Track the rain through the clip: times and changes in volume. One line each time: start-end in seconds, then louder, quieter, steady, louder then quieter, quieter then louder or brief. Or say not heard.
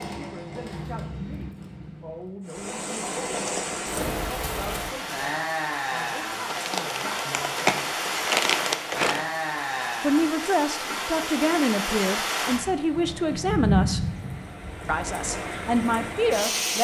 2.5-16.8 steady.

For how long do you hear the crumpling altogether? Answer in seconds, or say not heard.
3 s.